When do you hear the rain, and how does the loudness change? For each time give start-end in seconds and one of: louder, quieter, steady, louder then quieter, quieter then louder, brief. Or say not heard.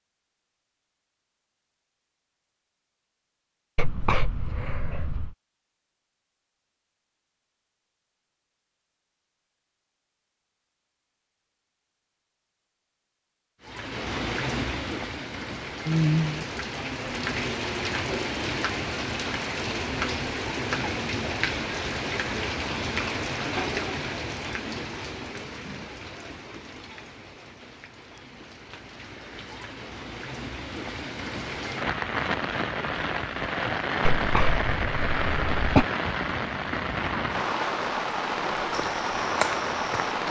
13.6-40.2 quieter then louder.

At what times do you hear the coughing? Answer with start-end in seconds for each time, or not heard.
3.8-5.3, 34.0-35.9.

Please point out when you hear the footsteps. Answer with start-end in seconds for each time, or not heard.
38.7-40.2.